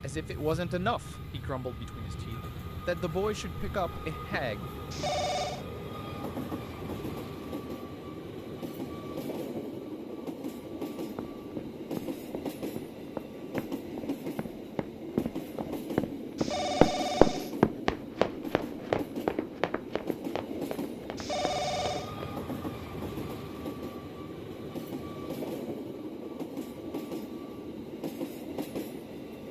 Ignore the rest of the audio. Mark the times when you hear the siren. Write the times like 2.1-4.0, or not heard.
not heard.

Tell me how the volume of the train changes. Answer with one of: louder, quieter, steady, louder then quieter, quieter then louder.
steady.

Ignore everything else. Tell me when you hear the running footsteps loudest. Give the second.
17 s.